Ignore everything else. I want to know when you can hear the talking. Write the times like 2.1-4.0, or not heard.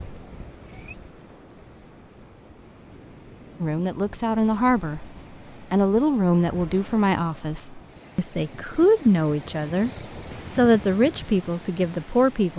3.6-9.9, 10.5-12.5.